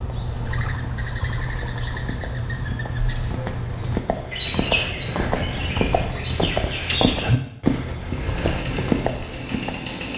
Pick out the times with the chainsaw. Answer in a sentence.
The chainsaw can be heard from 8.0 to 10.1 s.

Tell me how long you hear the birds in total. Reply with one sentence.
You can hear the birds for 7 seconds altogether.